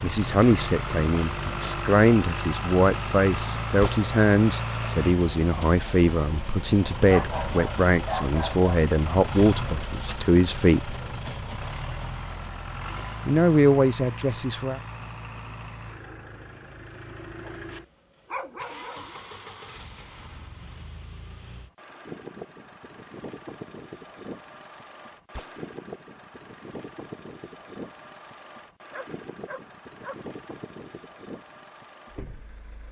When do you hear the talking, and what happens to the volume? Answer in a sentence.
You can hear the talking from 0.0 to 10.9 s, at a steady volume; and briefly from 13.2 to 14.8 s.